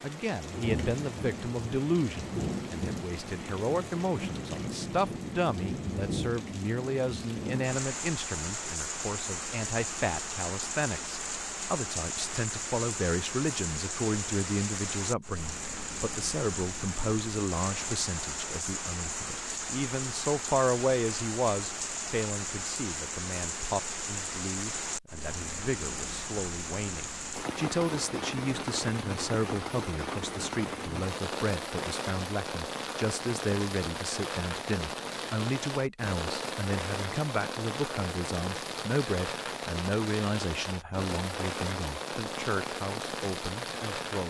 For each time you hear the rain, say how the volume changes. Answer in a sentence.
The rain can be heard from 0.0 to 44.2 s, at a steady volume.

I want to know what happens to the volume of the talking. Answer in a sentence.
The volume of the talking stays about the same.